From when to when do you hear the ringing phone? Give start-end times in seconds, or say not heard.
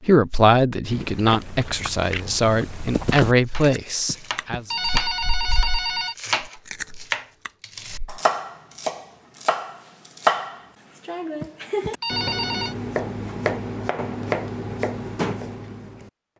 4.0-6.2, 11.4-12.8.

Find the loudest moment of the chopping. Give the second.
10 s.